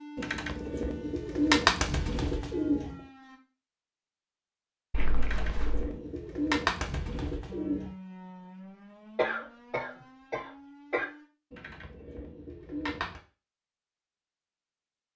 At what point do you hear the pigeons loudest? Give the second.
2 s.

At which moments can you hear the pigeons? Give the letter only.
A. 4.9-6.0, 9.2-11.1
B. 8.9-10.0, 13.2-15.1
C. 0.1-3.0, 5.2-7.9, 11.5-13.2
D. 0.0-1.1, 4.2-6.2
C.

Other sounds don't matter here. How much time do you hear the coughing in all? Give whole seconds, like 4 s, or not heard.
3 s.